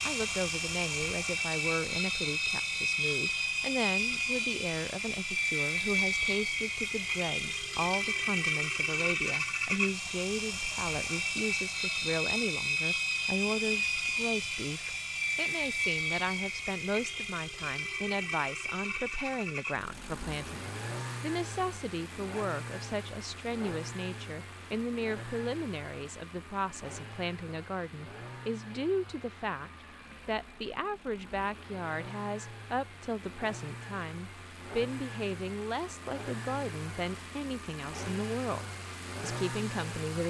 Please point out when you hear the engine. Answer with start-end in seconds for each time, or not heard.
0.0-40.2.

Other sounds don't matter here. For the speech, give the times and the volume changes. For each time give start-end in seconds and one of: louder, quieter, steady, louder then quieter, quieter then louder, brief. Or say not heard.
0.1-40.2 steady.